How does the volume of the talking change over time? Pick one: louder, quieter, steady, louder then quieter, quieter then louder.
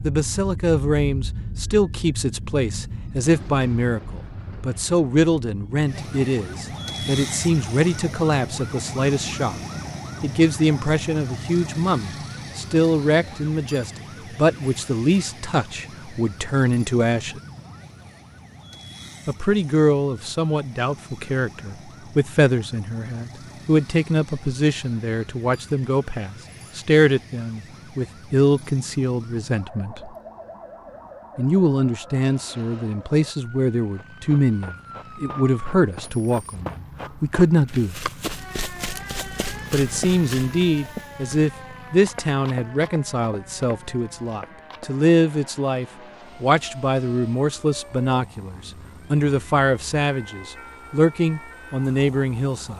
steady.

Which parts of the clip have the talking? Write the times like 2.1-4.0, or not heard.
0.0-9.6, 10.2-17.4, 19.2-30.1, 31.4-38.0, 39.7-52.7.